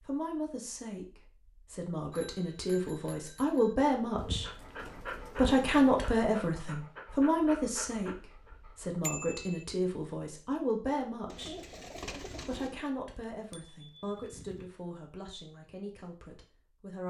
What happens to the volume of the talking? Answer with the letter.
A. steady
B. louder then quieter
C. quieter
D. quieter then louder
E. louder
B.